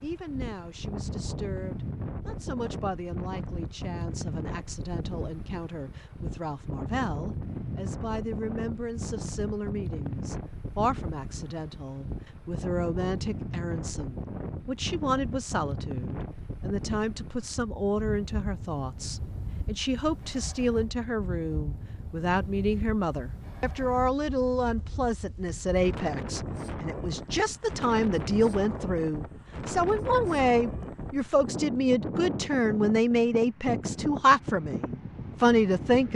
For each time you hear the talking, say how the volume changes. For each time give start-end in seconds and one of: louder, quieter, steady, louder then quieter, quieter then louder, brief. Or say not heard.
0.0-36.1 louder.